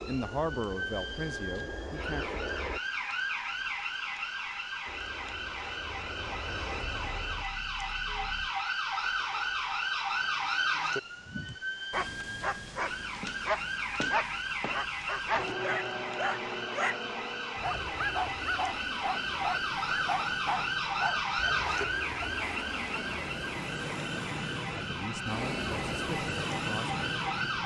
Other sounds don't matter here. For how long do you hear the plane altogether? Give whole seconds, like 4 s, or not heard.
18 s.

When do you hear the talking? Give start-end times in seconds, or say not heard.
0.0-2.4, 24.7-27.6.